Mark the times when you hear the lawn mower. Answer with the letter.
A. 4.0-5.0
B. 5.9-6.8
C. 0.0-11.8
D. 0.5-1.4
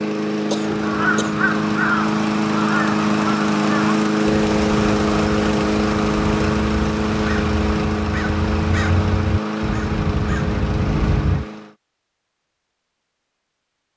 C.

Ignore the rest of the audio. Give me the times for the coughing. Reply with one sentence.
You can hear the coughing from 0.5 to 1.4 s.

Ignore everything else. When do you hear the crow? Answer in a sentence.
You can hear the crow from 0.7 to 11.4 s.